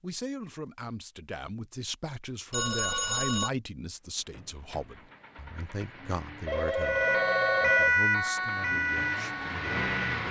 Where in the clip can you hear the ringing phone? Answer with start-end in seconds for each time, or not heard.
2.5-3.5, 6.5-8.0.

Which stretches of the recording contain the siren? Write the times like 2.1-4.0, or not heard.
6.8-10.2.